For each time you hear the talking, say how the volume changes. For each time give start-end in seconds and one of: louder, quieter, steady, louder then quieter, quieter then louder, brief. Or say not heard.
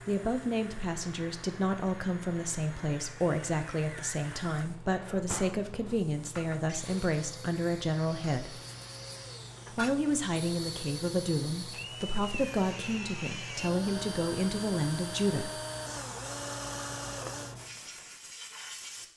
0.1-8.6 steady
9.7-15.6 steady.